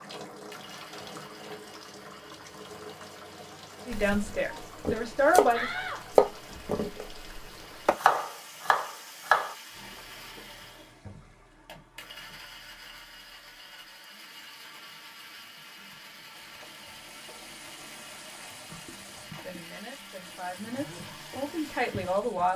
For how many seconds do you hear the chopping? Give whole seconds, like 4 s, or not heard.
6 s.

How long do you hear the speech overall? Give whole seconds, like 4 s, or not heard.
5 s.